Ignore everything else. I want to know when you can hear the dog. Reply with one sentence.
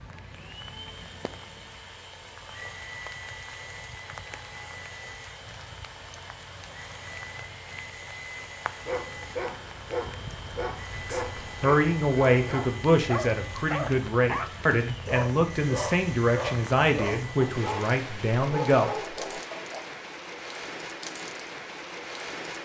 You can hear the dog from 8.8 to 19.9 s.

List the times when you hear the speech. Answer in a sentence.
The speech can be heard from 10.9 to 18.9 s.